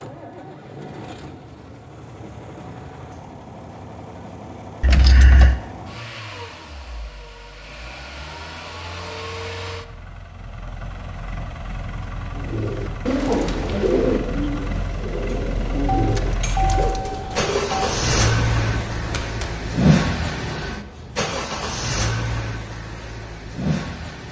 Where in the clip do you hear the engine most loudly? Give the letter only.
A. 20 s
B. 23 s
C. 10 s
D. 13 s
A.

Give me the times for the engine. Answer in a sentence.
You can hear the engine from 0.0 to 24.2 s.